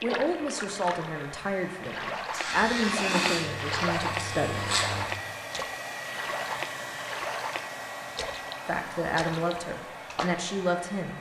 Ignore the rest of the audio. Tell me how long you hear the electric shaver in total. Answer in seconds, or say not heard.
3 s.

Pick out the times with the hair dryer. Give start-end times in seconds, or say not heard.
0.0-11.1.